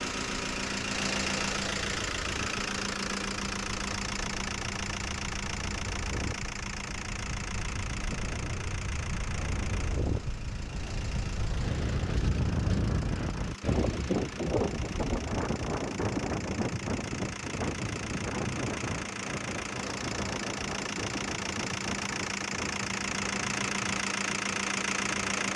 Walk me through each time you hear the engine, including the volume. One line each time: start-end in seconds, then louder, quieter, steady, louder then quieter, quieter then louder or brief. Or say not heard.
0.0-25.5 quieter then louder.